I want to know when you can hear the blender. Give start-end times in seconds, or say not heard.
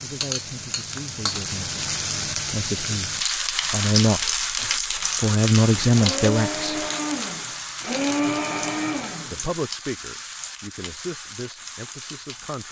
5.8-9.4.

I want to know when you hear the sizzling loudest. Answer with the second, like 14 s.
4 s.